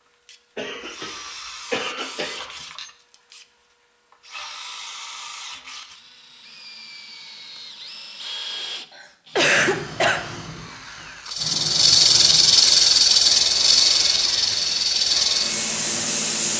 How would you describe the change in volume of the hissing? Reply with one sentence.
The volume of the hissing goes down.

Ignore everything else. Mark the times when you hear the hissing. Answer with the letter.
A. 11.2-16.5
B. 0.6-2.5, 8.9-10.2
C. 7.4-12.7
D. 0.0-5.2
A.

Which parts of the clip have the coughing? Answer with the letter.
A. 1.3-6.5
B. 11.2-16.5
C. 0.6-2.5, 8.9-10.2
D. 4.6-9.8
C.